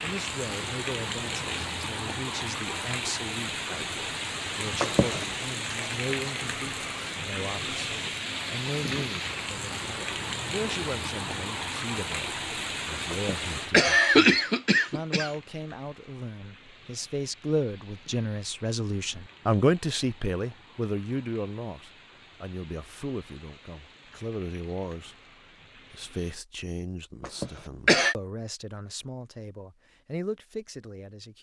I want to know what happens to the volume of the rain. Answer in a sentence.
The volume of the rain goes down.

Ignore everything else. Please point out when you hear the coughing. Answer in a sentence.
You can hear the coughing from 4.8 to 5.2 s, from 13.1 to 15.3 s and from 27.2 to 28.1 s.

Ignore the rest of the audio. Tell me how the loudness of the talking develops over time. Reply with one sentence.
The loudness of the talking goes up, then down.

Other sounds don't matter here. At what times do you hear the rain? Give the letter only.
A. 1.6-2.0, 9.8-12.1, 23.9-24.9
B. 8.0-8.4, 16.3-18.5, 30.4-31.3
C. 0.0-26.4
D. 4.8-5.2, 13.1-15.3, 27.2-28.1
C.